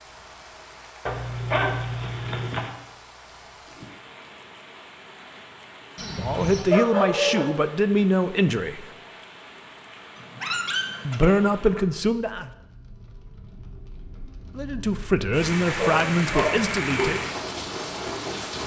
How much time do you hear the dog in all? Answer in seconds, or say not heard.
6 s.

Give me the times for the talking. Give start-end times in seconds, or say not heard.
6.0-8.9, 11.1-12.5, 14.6-17.2.